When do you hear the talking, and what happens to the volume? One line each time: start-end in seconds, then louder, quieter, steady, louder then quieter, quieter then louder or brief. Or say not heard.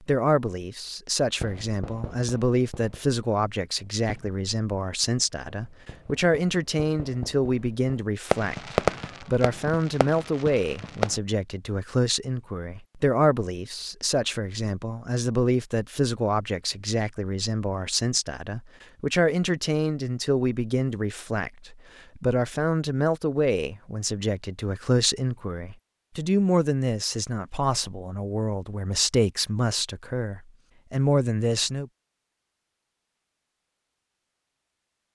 0.0-31.9 steady.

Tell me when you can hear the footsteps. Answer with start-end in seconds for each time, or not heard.
not heard.